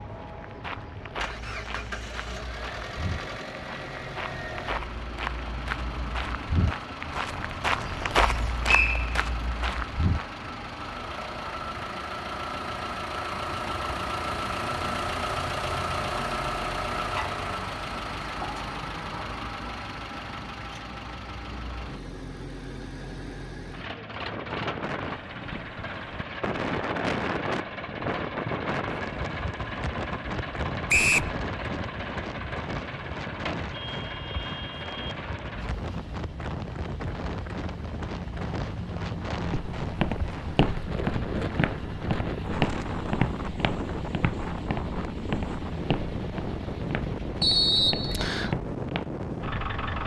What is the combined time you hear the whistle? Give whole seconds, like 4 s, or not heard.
2 s.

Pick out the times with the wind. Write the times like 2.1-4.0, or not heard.
24.3-50.0.